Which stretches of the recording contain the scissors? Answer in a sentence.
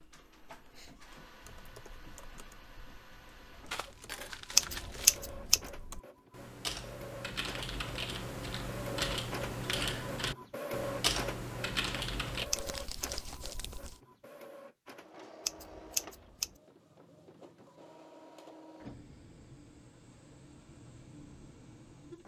You can hear the scissors from 4.5 to 5.7 s, from 12.5 to 13.1 s and from 15.4 to 16.5 s.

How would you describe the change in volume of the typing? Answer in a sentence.
The volume of the typing goes up.